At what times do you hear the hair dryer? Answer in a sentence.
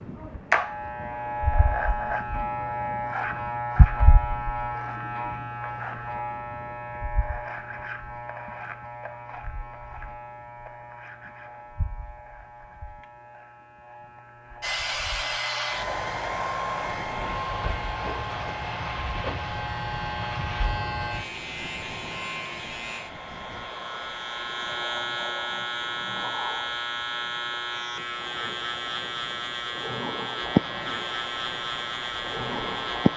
You can hear the hair dryer from 14.6 to 24.8 s and from 30.6 to 33.1 s.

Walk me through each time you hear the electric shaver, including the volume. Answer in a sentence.
You can hear the electric shaver from 0.0 to 33.1 s, getting quieter then louder.